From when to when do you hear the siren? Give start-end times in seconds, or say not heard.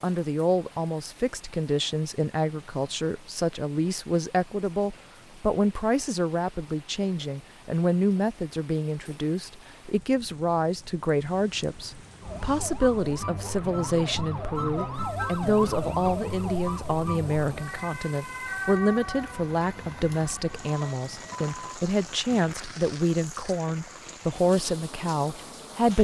12.2-21.6.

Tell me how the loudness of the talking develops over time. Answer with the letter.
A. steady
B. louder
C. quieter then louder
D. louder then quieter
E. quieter
A.